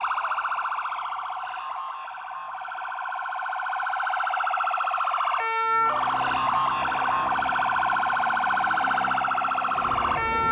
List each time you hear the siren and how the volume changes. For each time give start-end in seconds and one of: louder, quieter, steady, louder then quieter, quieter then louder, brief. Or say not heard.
0.0-10.4 louder.